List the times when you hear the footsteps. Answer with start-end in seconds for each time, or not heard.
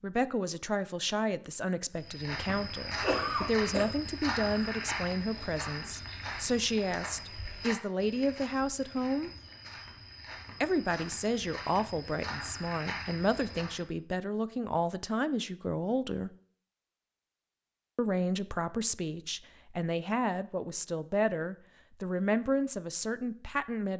1.9-13.8.